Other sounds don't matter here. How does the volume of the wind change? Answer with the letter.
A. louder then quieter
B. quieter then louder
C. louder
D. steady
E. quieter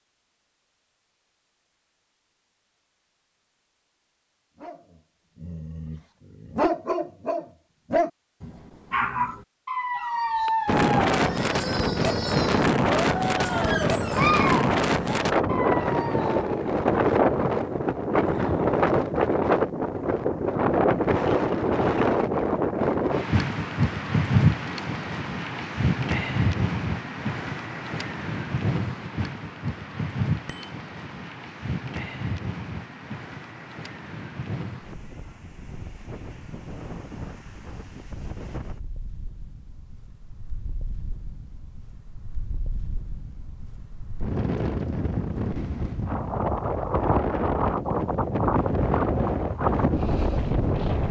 B.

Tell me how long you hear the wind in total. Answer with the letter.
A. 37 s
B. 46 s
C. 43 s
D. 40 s
D.